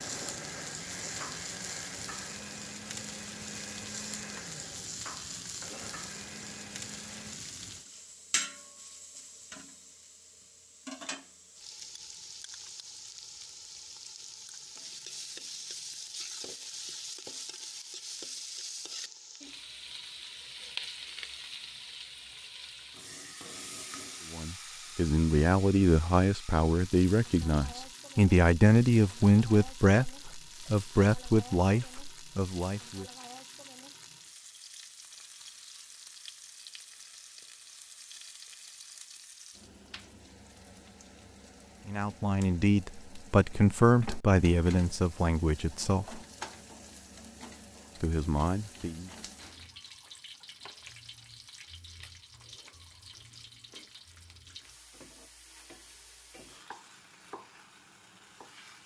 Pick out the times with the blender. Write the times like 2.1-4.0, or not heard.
0.0-7.4.